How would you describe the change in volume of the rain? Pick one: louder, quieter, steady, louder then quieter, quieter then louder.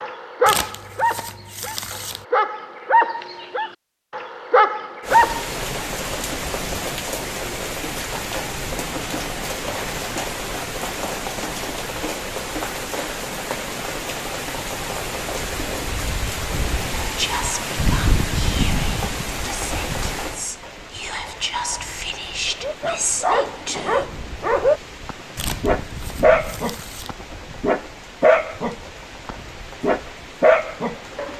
quieter.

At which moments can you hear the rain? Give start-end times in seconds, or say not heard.
5.0-31.3.